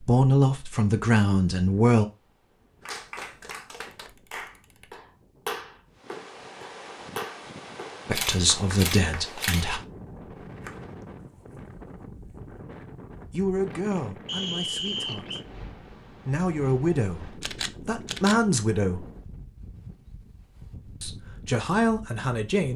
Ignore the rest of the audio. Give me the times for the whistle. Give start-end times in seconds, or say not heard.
14.2-15.4.